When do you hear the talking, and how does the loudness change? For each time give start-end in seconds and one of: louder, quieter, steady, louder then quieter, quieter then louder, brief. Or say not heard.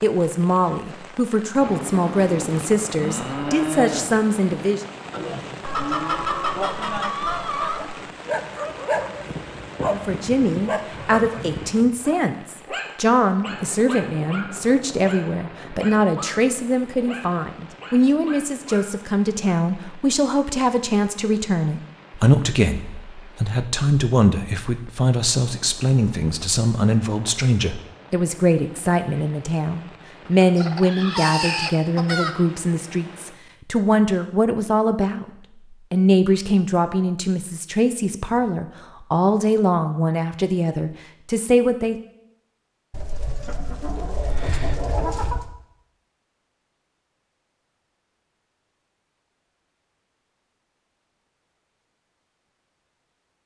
0.0-4.8 steady
9.8-35.2 steady
35.9-42.0 steady.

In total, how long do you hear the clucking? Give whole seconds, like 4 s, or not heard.
7 s.